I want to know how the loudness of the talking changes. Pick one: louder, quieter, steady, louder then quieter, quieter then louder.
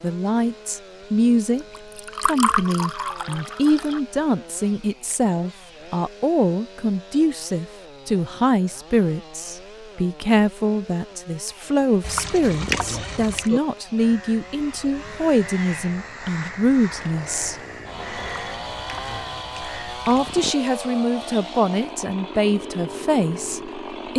steady.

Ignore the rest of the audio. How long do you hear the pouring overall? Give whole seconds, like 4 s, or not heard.
6 s.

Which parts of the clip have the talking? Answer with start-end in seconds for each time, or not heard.
0.0-17.6, 19.9-24.1.